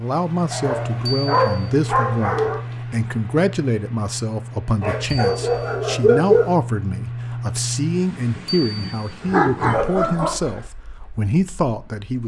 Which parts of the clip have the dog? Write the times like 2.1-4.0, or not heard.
0.5-2.6, 4.8-6.5, 9.2-10.6.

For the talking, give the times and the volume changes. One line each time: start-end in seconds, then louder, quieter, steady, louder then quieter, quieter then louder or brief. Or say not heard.
0.0-12.2 steady.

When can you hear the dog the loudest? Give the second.
6 s.